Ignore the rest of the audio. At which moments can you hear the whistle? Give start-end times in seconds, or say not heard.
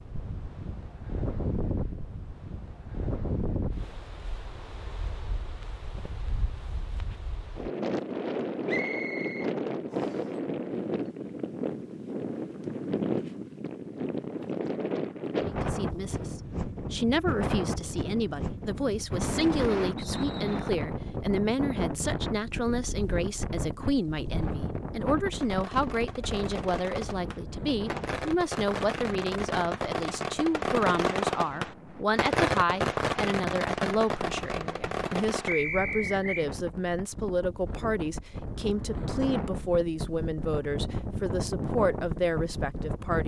8.7-10.2, 19.9-20.6, 35.5-36.5.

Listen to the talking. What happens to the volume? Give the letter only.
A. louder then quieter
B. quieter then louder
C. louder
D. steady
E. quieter
D.